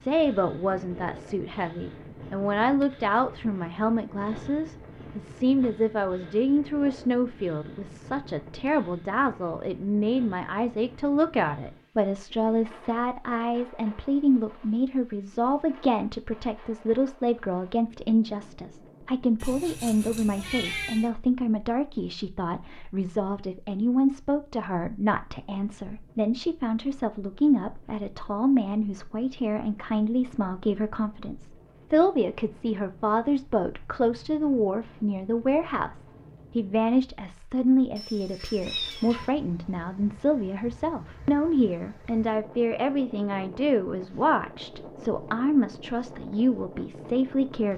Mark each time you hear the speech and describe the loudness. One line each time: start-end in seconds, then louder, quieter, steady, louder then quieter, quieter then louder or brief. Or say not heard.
0.0-47.7 steady.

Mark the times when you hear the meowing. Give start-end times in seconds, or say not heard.
19.4-21.1, 38.0-39.3.